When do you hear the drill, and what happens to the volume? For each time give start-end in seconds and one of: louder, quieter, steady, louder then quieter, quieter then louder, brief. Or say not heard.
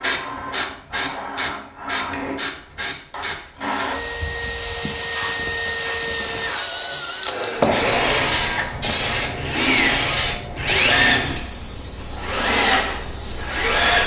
0.0-14.0 louder.